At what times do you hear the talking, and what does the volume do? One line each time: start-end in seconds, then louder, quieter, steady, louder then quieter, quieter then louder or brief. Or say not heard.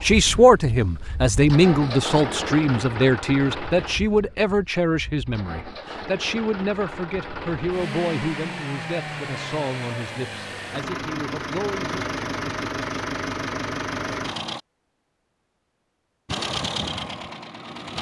0.0-12.1 quieter.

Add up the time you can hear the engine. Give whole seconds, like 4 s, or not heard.
16 s.